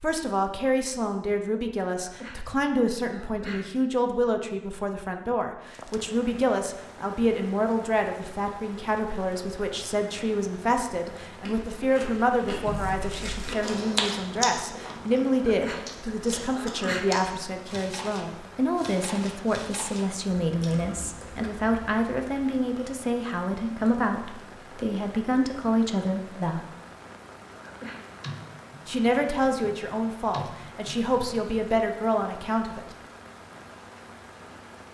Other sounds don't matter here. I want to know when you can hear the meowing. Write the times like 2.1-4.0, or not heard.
not heard.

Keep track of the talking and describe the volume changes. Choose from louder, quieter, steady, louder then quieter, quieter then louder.
steady.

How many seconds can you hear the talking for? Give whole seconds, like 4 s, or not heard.
31 s.